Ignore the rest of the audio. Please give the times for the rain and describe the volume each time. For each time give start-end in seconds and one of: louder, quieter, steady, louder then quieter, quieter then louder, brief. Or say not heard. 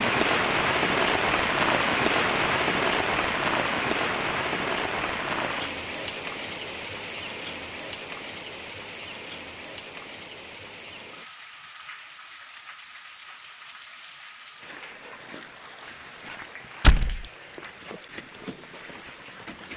0.0-19.7 quieter.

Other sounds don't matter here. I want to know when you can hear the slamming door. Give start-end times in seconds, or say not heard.
16.8-17.2.